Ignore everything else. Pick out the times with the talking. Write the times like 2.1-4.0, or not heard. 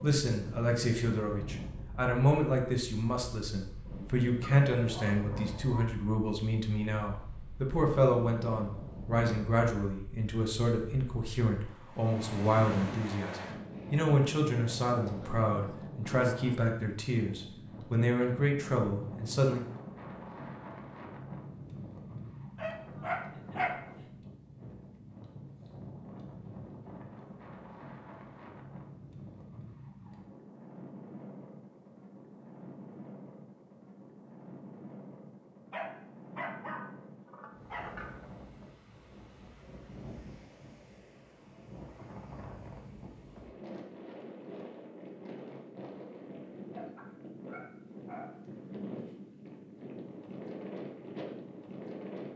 0.0-19.6.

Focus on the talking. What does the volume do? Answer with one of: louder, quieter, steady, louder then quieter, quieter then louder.
steady.